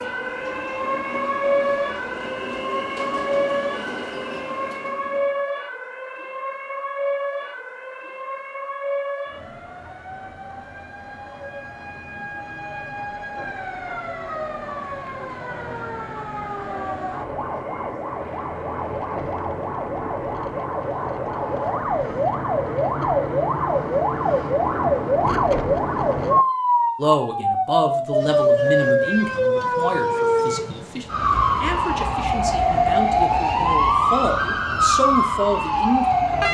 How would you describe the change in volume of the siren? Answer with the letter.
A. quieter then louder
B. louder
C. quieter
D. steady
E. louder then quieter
A.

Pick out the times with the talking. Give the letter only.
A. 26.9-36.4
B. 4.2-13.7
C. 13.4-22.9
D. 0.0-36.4
A.